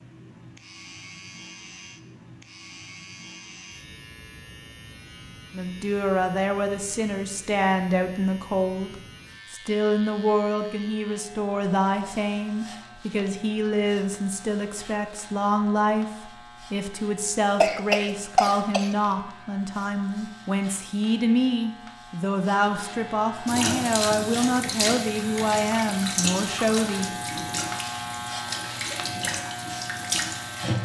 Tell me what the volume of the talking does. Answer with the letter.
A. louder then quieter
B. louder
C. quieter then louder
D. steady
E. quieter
D.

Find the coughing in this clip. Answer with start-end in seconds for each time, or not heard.
17.6-18.9.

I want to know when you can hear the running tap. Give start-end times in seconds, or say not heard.
23.4-30.8.